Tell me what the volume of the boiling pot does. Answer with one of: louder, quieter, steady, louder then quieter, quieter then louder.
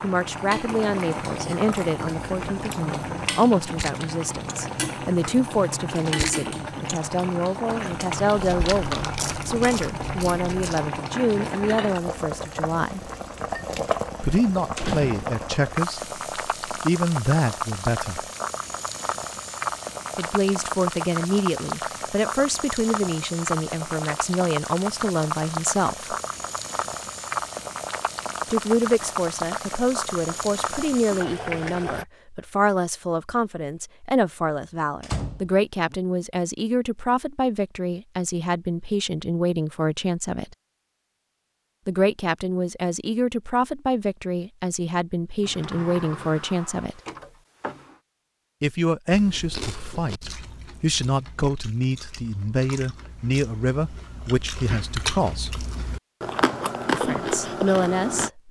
steady.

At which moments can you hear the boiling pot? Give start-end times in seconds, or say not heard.
0.0-32.0.